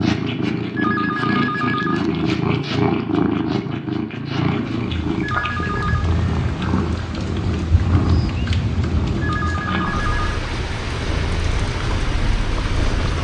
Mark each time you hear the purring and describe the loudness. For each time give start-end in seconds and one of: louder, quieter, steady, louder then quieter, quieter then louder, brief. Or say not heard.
0.0-13.1 quieter.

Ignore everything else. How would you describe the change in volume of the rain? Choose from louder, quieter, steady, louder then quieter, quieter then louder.
steady.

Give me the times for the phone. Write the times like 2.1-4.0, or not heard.
0.8-2.0, 5.2-6.1, 9.2-10.2.